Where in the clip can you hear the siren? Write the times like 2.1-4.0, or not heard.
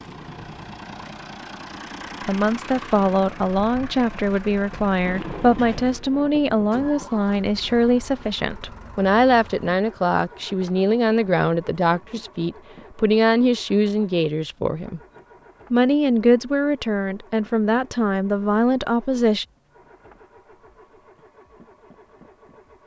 not heard.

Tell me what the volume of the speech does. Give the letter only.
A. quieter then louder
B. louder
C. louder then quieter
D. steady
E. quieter
D.